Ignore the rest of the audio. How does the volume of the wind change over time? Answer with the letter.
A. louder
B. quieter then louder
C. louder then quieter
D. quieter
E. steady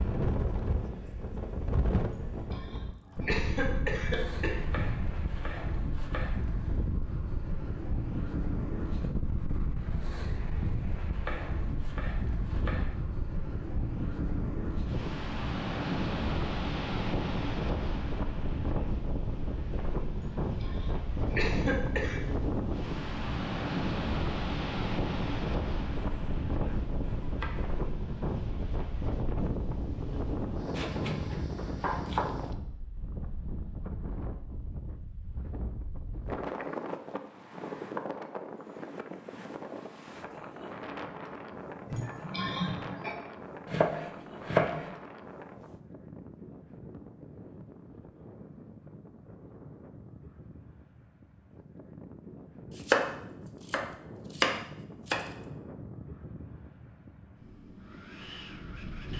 D.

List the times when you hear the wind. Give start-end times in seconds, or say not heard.
0.0-59.1.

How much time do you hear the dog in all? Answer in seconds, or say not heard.
not heard.